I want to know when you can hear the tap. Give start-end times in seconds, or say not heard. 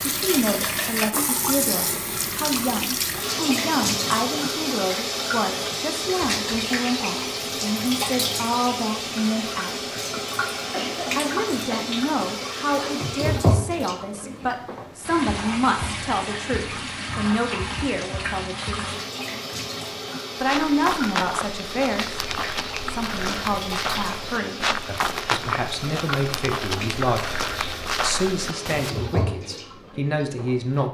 0.0-30.8.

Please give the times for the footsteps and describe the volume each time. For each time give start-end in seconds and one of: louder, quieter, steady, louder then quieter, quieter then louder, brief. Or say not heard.
20.4-29.0 steady.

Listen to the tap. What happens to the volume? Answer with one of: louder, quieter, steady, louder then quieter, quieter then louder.
quieter.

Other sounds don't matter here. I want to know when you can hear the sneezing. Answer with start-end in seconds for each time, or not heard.
10.7-11.9.